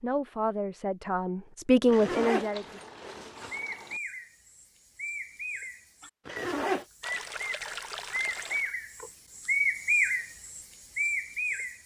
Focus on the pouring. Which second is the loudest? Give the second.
8 s.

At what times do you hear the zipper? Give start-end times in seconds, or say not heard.
1.9-3.6, 6.2-6.8.